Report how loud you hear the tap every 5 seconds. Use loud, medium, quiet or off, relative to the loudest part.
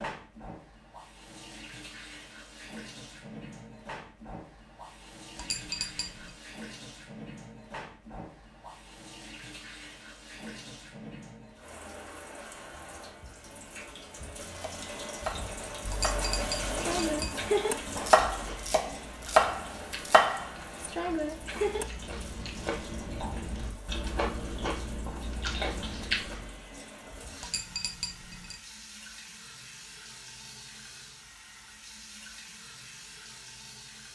medium, medium, medium, loud, medium, medium, medium.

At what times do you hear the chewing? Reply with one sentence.
The chewing can be heard from 17.9 to 26.6 s.